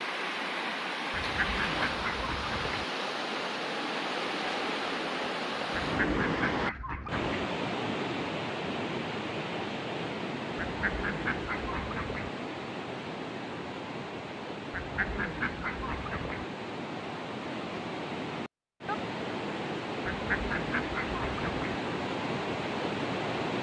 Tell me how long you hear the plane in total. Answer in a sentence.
You can hear the plane for 2 seconds altogether.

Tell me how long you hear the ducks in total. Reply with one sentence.
The ducks can be heard for 9 seconds in total.